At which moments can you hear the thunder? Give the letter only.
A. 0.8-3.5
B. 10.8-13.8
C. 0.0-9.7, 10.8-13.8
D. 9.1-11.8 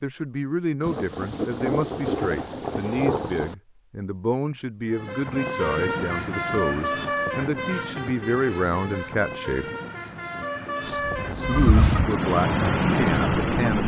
A.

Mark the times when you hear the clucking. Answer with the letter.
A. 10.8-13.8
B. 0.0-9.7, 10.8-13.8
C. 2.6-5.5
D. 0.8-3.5
A.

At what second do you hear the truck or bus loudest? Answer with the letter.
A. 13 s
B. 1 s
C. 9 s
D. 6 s
A.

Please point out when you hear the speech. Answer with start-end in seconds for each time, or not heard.
0.0-9.7, 10.8-13.8.